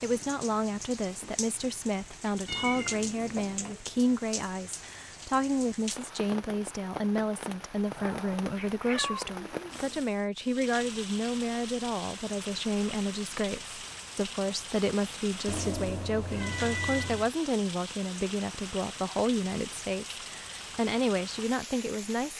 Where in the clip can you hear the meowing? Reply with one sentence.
The meowing can be heard from 2.5 to 3.8 s, from 8.6 to 10.0 s and from 15.4 to 17.3 s.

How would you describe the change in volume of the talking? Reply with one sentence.
The volume of the talking stays about the same.